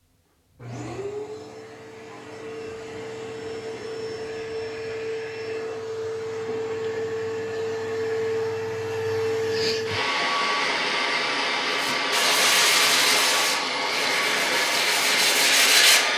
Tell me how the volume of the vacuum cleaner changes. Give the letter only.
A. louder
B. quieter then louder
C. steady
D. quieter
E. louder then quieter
A.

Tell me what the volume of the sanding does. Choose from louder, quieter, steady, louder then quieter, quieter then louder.
quieter then louder.